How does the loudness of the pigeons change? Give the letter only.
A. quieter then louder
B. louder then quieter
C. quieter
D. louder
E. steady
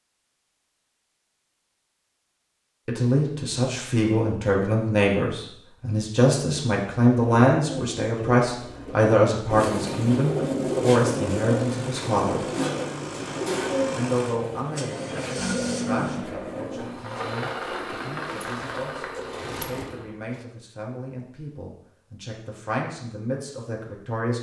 B.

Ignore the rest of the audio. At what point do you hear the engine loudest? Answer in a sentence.
The loudest moment of the engine is at 16 seconds.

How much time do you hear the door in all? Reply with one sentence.
You can hear the door for 2 seconds altogether.